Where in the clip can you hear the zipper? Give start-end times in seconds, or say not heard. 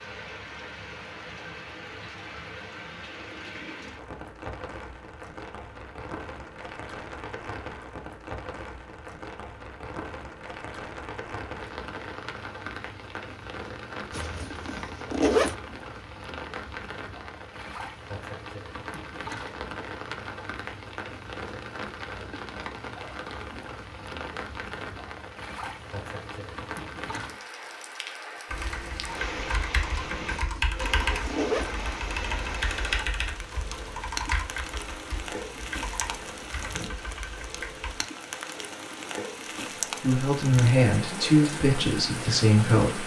14.1-15.6, 30.2-31.7.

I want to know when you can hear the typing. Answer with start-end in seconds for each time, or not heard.
28.5-37.9.